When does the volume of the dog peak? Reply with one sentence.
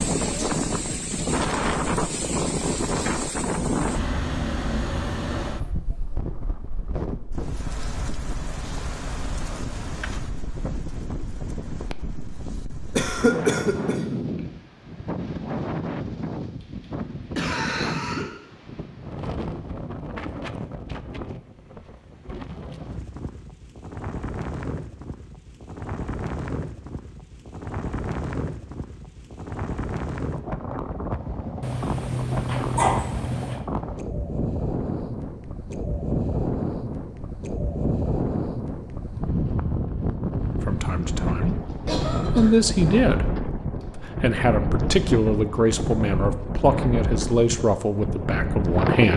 The volume of the dog peaks at 33 seconds.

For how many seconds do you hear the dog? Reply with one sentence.
The dog can be heard for 2 seconds in total.